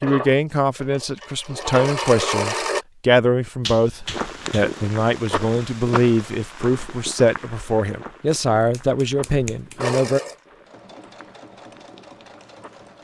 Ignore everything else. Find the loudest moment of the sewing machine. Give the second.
2 s.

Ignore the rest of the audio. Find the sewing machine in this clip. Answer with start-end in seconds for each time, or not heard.
0.0-2.9, 9.8-12.9.